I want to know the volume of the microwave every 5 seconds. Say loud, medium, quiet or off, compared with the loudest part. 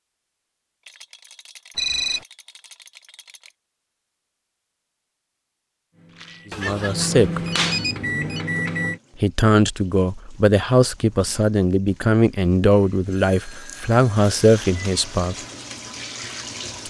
off, loud, off, quiet.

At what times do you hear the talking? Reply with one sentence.
The talking can be heard from 6.5 to 7.4 s and from 9.2 to 15.3 s.